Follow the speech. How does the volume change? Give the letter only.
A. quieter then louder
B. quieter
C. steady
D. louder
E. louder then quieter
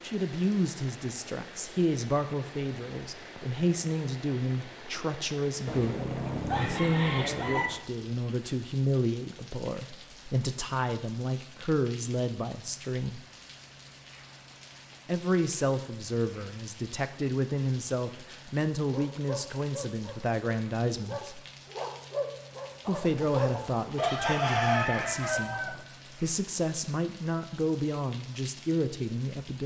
C.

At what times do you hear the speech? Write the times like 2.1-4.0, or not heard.
0.0-13.2, 15.1-21.4, 22.9-29.6.